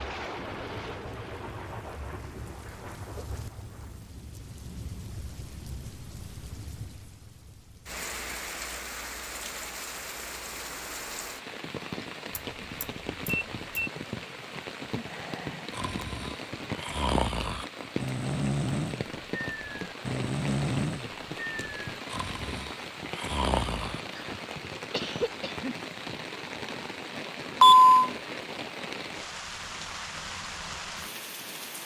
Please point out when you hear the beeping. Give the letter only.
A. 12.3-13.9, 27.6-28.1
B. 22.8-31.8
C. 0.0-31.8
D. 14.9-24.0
A.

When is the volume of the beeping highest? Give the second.
28 s.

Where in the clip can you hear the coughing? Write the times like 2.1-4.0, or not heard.
24.1-25.8.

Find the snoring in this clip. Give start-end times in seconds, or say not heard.
14.9-24.0.